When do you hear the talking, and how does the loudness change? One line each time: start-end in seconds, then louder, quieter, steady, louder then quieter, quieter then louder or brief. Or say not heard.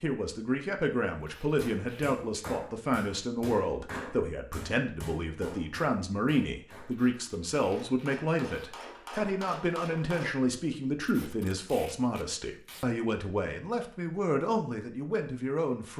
0.0-15.9 steady.